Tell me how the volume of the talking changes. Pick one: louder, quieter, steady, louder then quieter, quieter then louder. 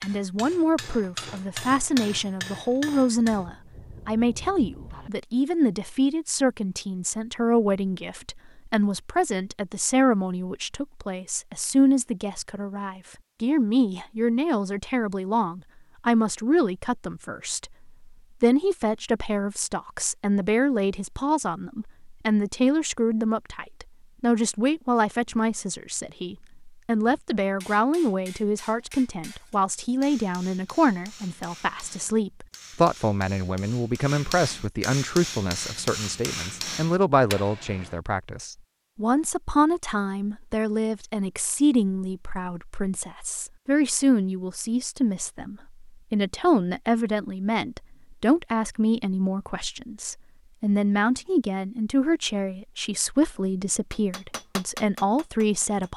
steady.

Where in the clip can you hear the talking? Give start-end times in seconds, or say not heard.
0.0-55.9.